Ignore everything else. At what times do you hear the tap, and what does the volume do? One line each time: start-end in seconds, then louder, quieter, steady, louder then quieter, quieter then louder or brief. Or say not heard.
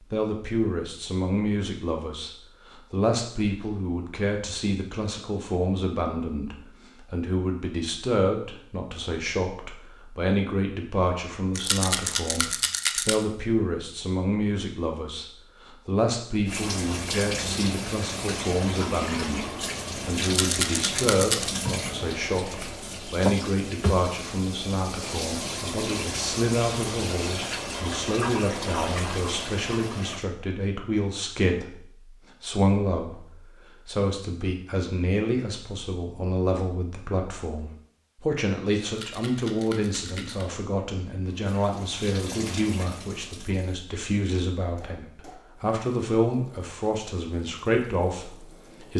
16.4-30.2 steady
41.2-48.9 quieter.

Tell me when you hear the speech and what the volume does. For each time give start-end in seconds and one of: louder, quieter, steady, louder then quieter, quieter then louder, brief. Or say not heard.
0.0-48.9 steady.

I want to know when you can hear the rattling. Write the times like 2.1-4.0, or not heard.
11.6-13.2, 20.2-21.5, 38.9-40.5.